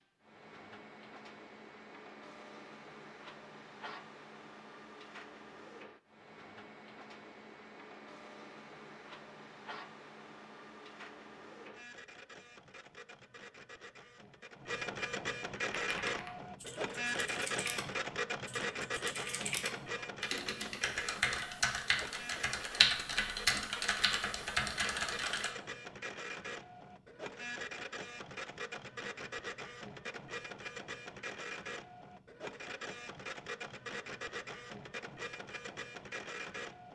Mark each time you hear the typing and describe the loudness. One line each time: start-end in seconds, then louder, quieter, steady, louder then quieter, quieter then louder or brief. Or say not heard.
15.7-25.5 louder.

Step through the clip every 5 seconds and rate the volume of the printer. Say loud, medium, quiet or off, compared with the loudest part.
quiet, quiet, medium, loud, medium, medium, medium, medium.